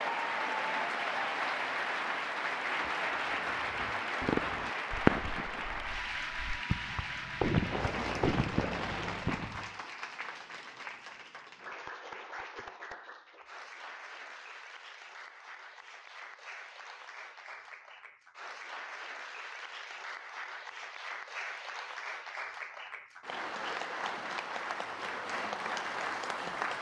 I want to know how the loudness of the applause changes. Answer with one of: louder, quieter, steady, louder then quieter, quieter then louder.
quieter then louder.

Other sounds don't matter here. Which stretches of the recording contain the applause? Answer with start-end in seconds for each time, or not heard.
0.0-26.7.